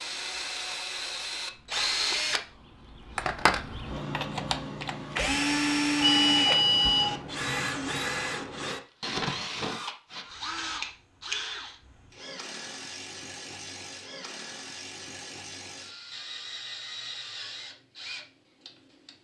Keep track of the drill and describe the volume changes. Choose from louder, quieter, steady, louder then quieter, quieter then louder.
quieter.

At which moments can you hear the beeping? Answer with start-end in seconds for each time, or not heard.
6.0-7.2.